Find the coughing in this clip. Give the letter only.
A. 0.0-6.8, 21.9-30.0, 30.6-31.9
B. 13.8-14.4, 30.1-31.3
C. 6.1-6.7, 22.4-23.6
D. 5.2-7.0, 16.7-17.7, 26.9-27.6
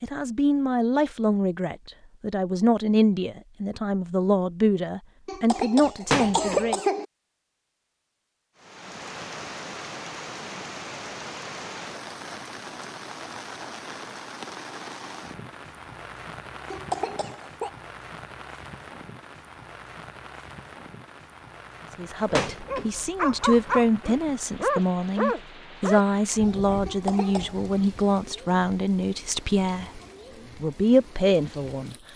D.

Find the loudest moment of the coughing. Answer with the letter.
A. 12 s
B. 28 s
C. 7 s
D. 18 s
C.